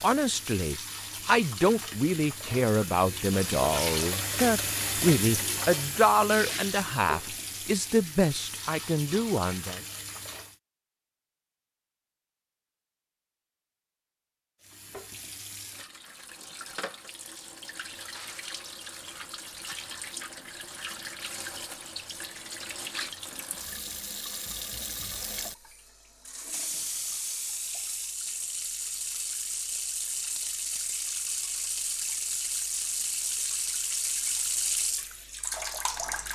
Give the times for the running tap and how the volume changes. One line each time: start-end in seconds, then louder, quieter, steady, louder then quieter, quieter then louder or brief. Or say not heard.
0.0-10.6 louder then quieter
14.6-36.3 louder.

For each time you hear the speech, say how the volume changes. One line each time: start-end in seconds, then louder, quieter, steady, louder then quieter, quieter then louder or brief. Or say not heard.
0.0-9.8 steady.